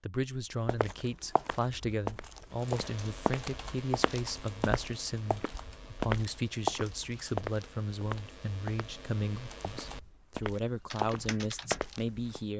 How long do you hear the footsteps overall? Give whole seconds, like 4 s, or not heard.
11 s.